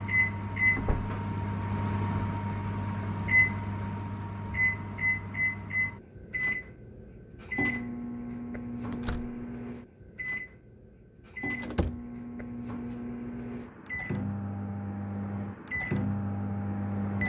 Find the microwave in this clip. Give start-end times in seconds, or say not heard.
0.0-17.2.